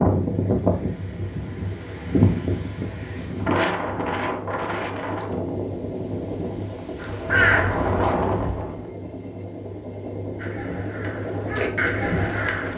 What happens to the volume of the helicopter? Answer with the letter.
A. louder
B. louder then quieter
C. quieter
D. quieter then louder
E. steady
A.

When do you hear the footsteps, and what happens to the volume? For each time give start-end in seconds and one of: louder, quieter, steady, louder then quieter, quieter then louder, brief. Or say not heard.
not heard.